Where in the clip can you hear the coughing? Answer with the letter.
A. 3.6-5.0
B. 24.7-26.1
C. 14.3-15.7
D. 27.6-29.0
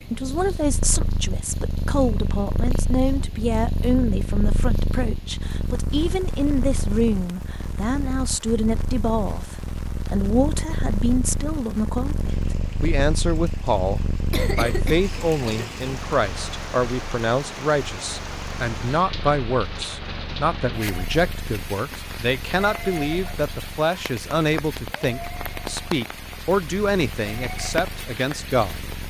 C.